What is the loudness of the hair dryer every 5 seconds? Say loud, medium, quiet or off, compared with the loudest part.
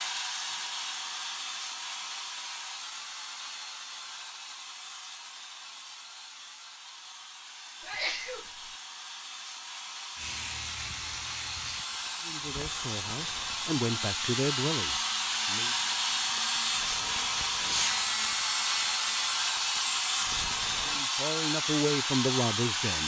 medium, quiet, medium, loud, loud.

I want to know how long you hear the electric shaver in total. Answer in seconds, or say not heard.
11 s.